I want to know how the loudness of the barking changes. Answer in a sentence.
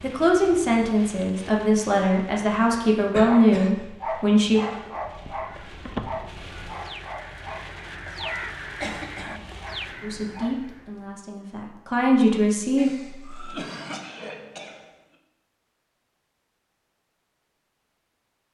The volume of the barking goes down.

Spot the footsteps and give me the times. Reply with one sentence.
You can't hear the footsteps here.